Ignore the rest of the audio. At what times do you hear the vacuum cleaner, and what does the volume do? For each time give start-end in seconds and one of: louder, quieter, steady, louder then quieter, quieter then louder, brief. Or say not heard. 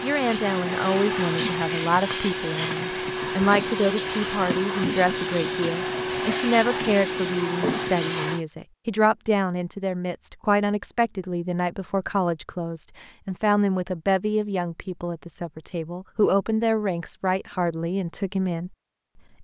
0.0-8.4 steady.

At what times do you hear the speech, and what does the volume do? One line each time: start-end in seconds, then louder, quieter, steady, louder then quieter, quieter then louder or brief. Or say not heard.
0.0-18.7 steady.